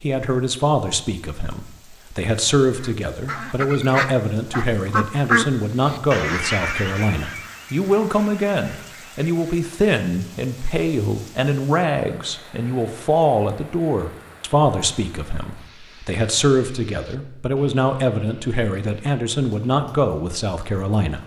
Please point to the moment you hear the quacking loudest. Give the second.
5 s.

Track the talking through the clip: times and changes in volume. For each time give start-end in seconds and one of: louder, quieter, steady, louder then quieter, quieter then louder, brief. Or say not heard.
0.0-21.2 steady.